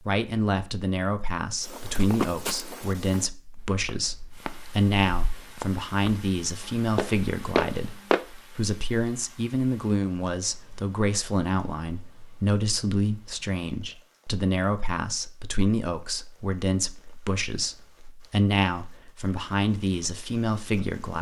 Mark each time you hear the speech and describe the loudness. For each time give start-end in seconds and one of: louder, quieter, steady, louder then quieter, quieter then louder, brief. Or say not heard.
0.0-21.1 steady.